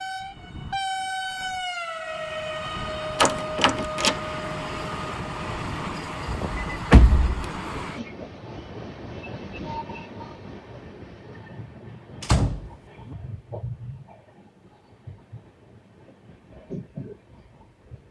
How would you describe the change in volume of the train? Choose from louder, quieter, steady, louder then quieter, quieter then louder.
quieter.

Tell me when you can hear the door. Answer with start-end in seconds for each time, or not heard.
3.2-4.2, 6.2-7.3, 12.2-13.2.